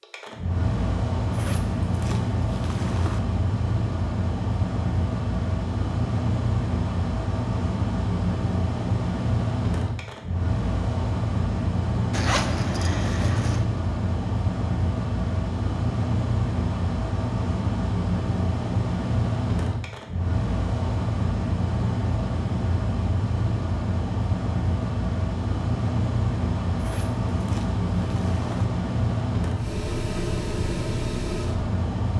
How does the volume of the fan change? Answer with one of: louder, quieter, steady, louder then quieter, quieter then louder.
steady.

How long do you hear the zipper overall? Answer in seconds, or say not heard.
5 s.